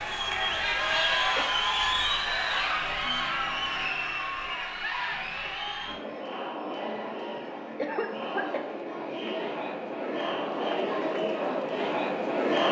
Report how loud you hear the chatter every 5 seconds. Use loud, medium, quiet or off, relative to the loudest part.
loud, medium, loud.